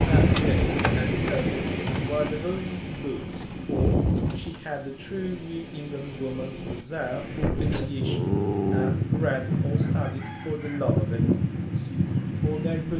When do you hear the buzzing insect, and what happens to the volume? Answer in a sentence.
You can't hear the buzzing insect here.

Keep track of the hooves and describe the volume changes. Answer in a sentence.
The volume of the hooves goes down, then up.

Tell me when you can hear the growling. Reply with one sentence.
The growling can be heard from 8.0 to 8.9 s.